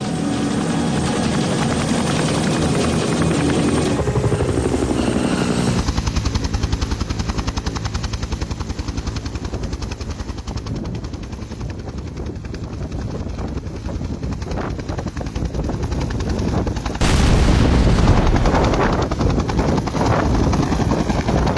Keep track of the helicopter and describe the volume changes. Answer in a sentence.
The loudness of the helicopter goes down, then up.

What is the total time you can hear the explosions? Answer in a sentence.
You can hear the explosions for 2 seconds altogether.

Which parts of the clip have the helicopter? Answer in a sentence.
The helicopter can be heard from 0.0 to 21.5 s.